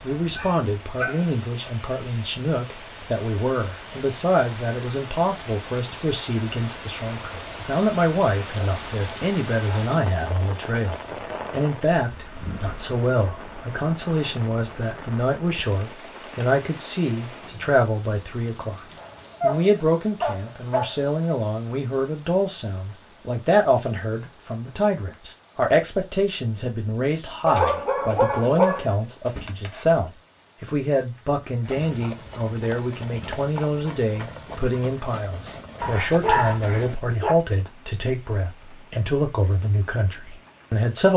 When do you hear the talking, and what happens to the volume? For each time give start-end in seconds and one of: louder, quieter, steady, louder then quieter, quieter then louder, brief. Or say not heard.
0.0-41.1 steady.